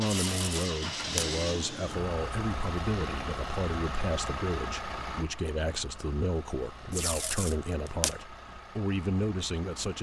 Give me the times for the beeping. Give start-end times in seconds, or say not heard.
not heard.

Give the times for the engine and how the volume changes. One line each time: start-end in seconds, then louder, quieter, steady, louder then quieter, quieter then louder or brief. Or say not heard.
0.0-9.9 quieter.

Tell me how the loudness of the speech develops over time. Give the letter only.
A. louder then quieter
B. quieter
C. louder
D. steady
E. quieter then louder
D.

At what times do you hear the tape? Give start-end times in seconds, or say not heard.
0.1-1.4, 6.9-8.2.